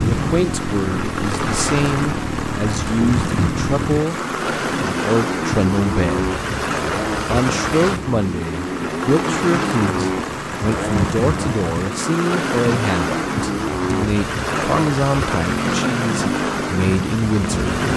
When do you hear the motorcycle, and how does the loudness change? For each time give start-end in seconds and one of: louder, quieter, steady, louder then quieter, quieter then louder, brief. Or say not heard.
0.0-17.9 steady.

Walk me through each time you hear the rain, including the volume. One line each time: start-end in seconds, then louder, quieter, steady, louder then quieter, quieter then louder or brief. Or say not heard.
0.0-17.9 steady.